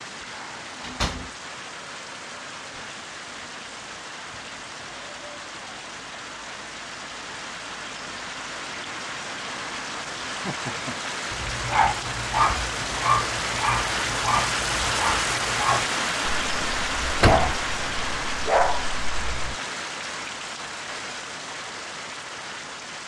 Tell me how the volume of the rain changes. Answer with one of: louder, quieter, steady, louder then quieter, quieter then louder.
louder then quieter.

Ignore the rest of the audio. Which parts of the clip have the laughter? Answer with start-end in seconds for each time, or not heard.
10.4-10.9.